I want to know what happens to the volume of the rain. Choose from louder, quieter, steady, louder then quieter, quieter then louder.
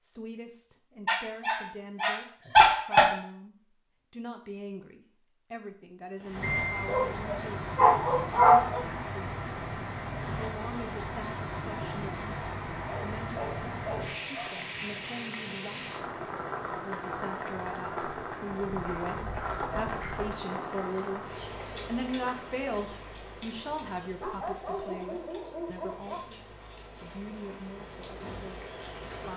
quieter.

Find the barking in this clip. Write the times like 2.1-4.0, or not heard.
1.1-3.1, 6.4-8.8, 12.8-14.7, 18.6-20.4, 24.2-26.2.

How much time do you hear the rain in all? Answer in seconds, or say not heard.
23 s.